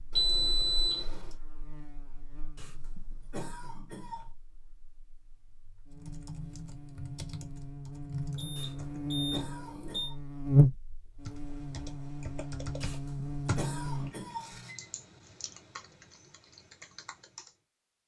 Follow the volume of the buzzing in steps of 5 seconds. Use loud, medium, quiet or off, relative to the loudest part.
quiet, medium, loud, off.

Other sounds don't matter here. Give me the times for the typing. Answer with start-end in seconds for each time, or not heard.
5.9-9.0, 11.2-17.6.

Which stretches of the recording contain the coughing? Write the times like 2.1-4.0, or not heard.
2.5-4.3, 8.6-10.2, 12.8-14.6.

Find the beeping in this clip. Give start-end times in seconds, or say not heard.
0.1-1.3, 8.3-10.1, 14.2-14.9.